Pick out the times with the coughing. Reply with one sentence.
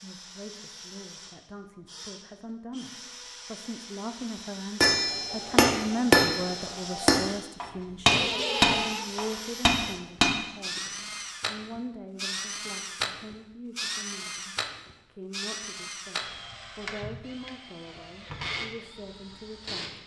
The coughing can be heard from 8.1 to 9.1 s.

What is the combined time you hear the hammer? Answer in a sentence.
You can hear the hammer for 6 seconds altogether.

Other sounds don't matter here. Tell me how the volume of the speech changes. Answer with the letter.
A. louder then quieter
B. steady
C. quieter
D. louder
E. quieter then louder
A.